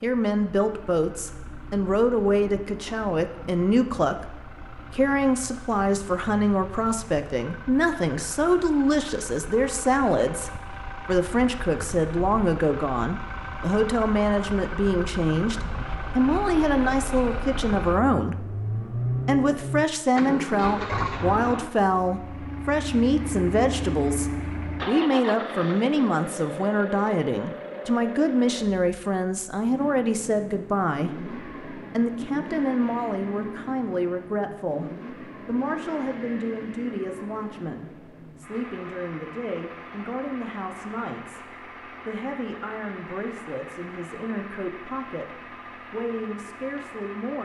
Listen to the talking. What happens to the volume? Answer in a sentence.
The volume of the talking goes down.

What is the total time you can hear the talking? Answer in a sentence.
The talking can be heard for 47 seconds in total.